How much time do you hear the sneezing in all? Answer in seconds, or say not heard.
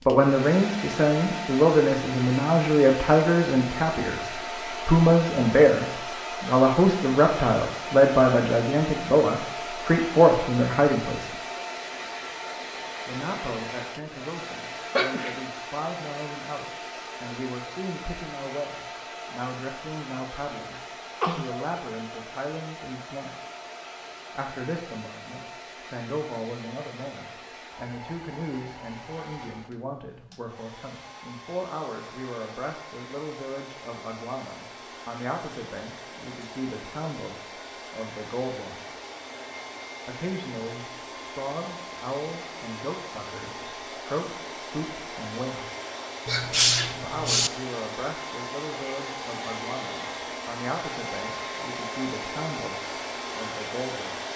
2 s.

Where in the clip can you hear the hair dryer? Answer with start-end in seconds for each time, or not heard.
0.0-54.3.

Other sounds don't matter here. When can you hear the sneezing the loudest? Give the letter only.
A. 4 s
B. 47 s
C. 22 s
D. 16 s
B.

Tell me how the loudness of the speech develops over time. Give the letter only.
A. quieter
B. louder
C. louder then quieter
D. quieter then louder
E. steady
A.